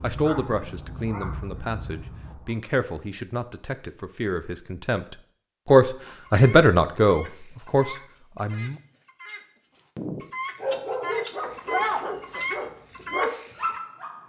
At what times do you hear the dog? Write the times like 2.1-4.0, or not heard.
0.0-2.5, 10.6-14.2.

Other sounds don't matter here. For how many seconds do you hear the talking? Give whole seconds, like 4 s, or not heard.
9 s.